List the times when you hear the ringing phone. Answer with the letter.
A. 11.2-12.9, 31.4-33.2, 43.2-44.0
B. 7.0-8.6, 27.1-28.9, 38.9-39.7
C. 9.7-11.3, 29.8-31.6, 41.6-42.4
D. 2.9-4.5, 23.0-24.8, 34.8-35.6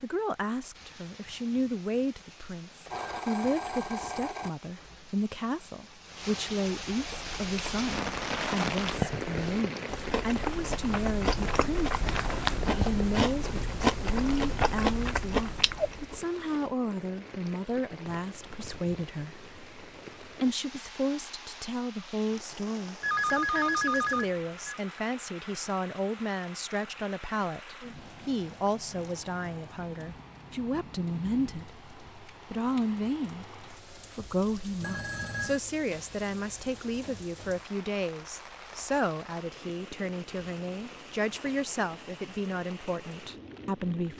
D.